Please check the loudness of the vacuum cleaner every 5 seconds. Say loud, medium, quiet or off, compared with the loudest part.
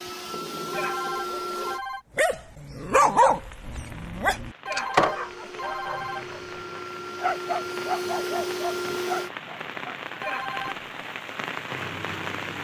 loud, loud, off.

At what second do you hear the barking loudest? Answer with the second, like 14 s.
3 s.